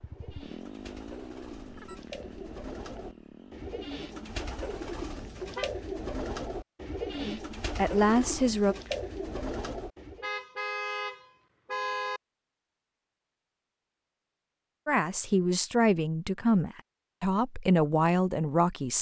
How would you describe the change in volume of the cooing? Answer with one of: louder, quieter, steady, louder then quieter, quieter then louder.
louder.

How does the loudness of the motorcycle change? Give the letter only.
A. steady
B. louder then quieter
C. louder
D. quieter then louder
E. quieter
E.